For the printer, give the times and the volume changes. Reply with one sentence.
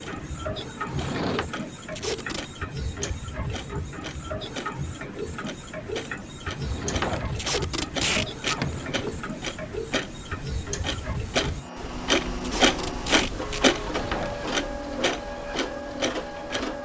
The printer can be heard from 0.0 to 16.8 s, at a steady volume.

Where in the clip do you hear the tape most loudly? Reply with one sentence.
The loudest moment of the tape is at 8 seconds.